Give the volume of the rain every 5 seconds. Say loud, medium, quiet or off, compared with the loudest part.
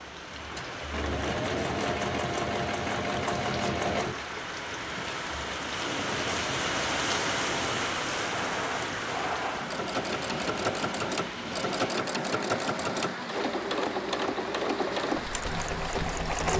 medium, loud, medium, medium.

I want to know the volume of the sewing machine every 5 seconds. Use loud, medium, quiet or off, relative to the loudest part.
loud, medium, loud, loud.